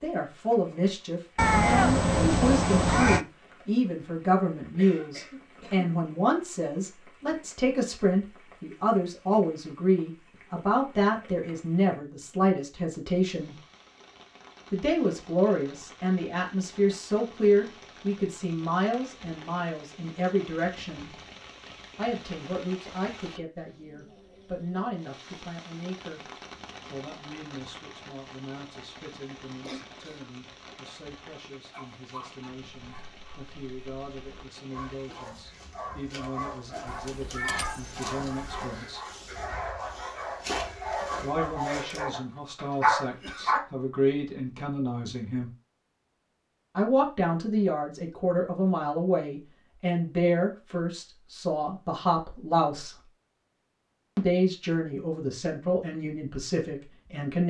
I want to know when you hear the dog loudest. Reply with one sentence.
The loudest moment of the dog is at 43 seconds.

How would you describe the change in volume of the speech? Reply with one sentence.
The loudness of the speech goes down, then up.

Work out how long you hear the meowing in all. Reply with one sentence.
You can hear the meowing for 4 seconds altogether.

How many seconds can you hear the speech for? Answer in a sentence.
You can hear the speech for 51 seconds altogether.